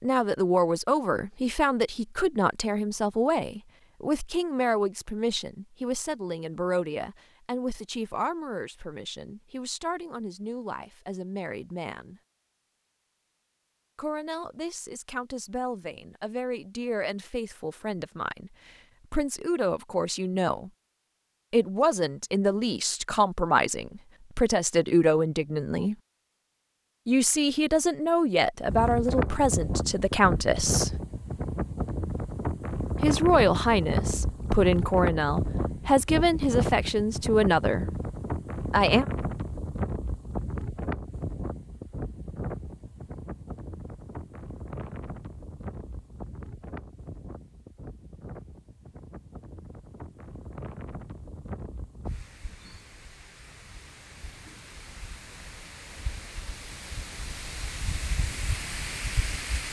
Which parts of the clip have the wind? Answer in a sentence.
The wind can be heard from 28.6 to 59.6 s.